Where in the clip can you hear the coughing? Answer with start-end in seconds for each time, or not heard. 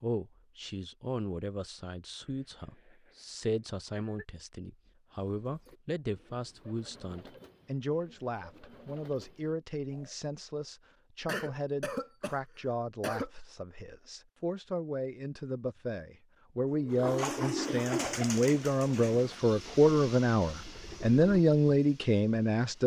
2.2-4.2, 11.2-13.3, 16.9-18.0.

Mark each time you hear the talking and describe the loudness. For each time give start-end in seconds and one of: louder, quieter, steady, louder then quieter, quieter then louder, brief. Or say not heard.
0.0-22.8 louder.